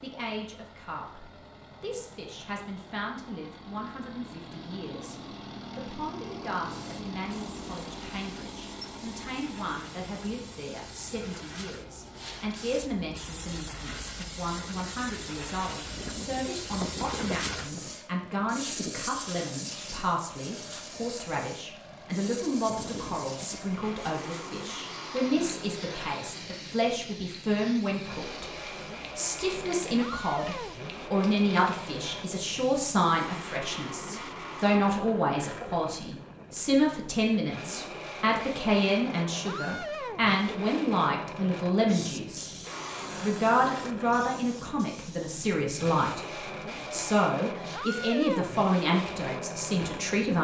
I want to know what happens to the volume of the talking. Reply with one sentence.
The volume of the talking goes up.